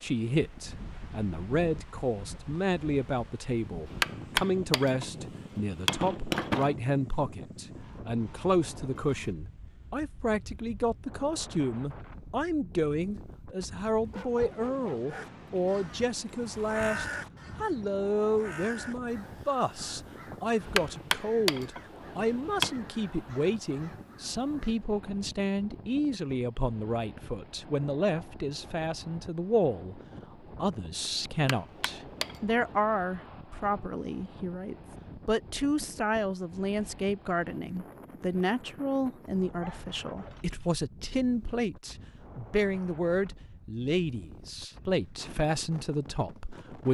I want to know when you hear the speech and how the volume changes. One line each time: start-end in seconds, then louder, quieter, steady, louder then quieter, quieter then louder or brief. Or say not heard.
0.0-46.8 steady.